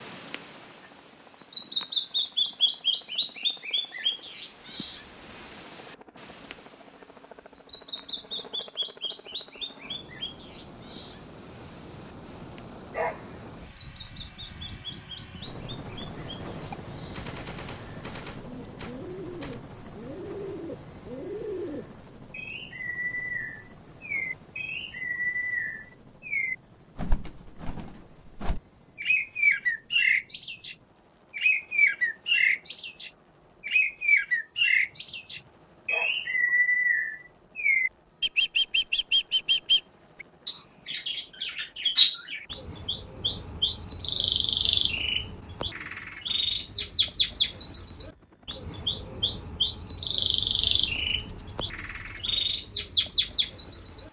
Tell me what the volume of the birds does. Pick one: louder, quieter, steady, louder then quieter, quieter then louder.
quieter then louder.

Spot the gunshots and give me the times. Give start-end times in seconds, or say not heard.
16.7-19.6, 50.4-52.4.